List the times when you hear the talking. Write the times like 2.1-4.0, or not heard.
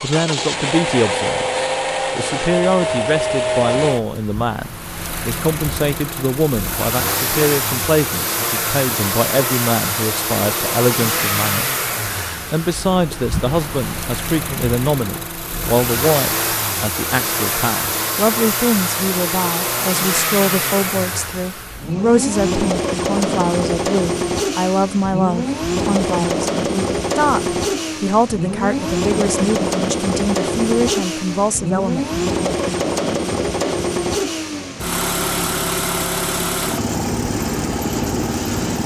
0.0-32.2.